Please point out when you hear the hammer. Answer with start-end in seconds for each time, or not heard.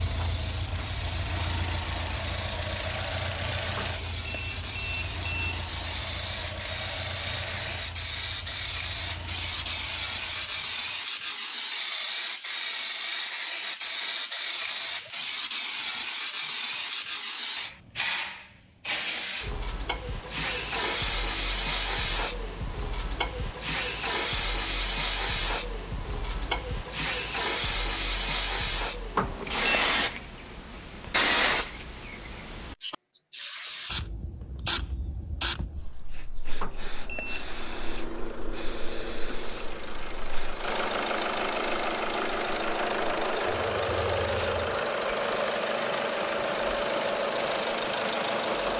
not heard.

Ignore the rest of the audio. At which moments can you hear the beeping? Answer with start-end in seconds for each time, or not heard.
3.8-5.6, 29.1-29.9, 36.6-37.5.